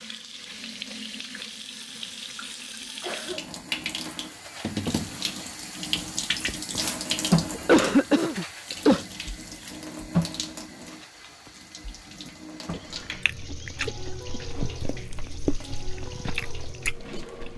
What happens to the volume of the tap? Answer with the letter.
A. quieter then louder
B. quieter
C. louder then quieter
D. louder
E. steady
C.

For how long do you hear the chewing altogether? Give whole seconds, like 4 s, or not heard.
5 s.